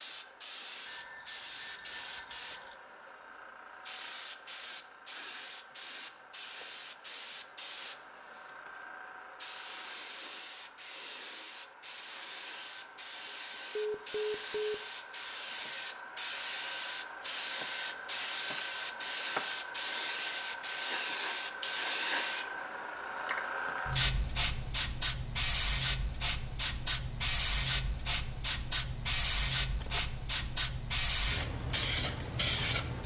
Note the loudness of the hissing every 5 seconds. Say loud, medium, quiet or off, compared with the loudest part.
medium, medium, medium, loud, loud, loud, loud.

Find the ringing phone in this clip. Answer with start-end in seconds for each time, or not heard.
0.8-2.8, 13.8-14.8, 29.8-30.4.